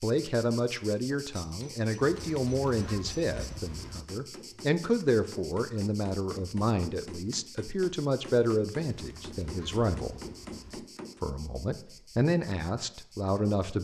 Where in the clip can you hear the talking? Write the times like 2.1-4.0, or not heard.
0.0-10.2, 11.2-13.7.